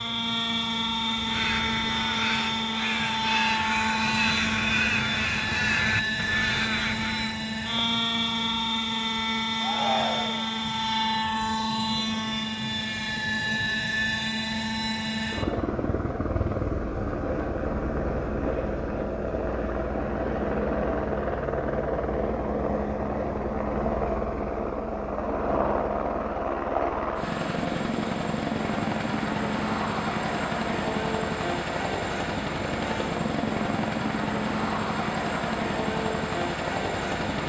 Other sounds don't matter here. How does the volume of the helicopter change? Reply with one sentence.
The loudness of the helicopter stays about the same.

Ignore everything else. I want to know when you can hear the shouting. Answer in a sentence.
The shouting can be heard from 9.6 to 10.5 s.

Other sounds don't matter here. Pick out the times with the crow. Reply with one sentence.
The crow can be heard from 1.0 to 7.5 s.